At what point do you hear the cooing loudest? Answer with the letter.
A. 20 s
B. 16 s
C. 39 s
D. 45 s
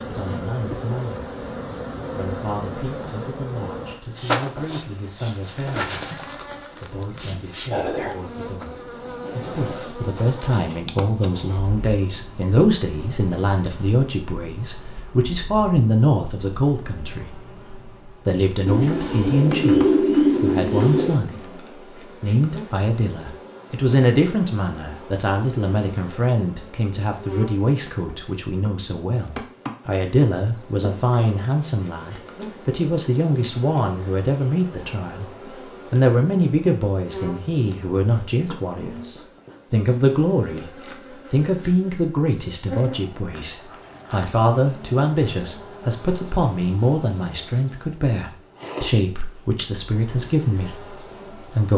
A.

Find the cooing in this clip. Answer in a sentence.
You can hear the cooing from 18.6 to 21.2 s.